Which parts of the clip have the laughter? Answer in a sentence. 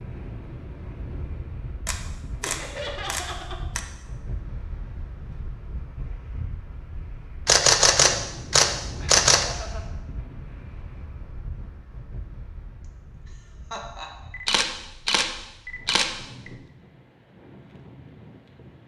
You can hear the laughter from 2.4 to 3.6 s, from 9.0 to 9.8 s and from 13.7 to 14.2 s.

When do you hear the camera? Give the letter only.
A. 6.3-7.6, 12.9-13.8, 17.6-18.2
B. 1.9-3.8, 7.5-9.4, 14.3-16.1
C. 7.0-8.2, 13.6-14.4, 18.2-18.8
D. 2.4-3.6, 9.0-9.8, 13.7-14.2
B.